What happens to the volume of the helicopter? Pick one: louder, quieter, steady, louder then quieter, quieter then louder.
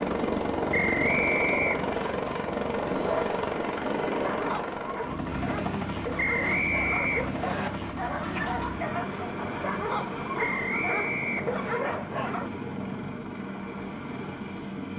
quieter.